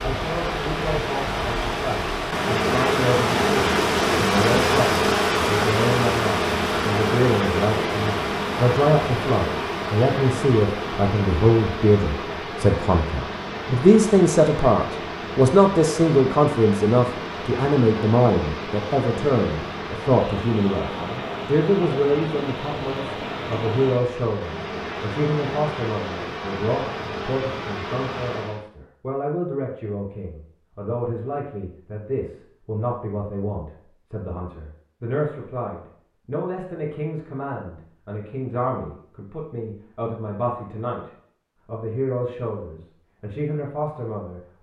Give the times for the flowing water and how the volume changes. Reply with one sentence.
You can hear the flowing water from 0.0 to 28.6 s, getting quieter.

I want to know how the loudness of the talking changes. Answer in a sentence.
The volume of the talking goes up, then down.